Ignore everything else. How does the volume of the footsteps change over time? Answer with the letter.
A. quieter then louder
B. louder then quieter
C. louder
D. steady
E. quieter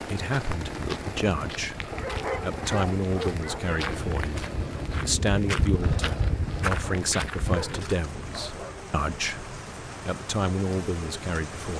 C.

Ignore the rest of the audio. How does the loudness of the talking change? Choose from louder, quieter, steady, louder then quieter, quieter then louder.
steady.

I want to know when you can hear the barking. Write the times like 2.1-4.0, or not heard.
1.9-4.0, 6.8-8.8.